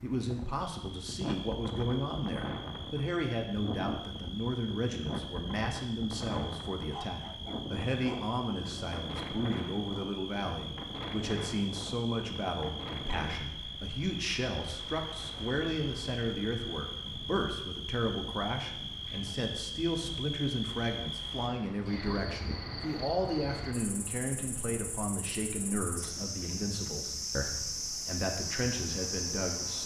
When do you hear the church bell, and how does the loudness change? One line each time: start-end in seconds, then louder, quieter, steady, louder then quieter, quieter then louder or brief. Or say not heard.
not heard.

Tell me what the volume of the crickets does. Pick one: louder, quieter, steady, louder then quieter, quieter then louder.
louder.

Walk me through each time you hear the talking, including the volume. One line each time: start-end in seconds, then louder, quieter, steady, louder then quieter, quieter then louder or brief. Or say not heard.
0.0-29.8 steady.